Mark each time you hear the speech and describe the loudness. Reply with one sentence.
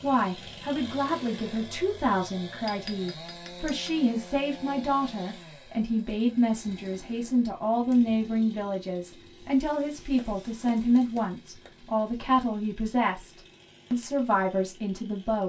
You can hear the speech from 0.0 to 15.4 s, at a steady volume.